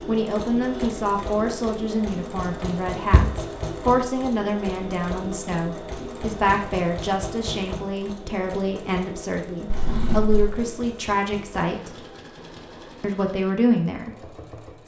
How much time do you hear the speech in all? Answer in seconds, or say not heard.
14 s.